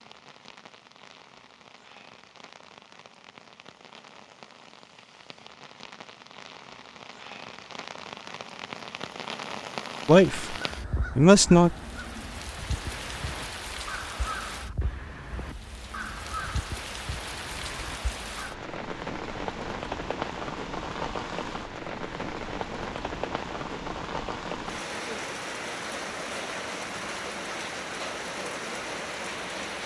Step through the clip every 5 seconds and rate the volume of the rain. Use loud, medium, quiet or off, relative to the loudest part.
quiet, medium, medium, loud, loud, loud.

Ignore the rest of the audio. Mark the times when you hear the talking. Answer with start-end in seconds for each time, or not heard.
10.1-10.6, 11.2-11.8.